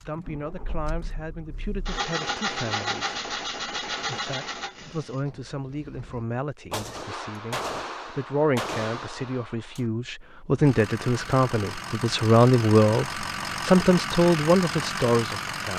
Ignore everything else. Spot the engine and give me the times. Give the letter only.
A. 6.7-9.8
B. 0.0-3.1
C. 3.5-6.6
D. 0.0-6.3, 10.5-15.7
D.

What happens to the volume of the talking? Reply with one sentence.
The loudness of the talking goes up.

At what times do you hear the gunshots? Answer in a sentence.
You can hear the gunshots from 6.7 to 9.8 s.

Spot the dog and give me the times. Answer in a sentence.
The dog can't be heard in this clip.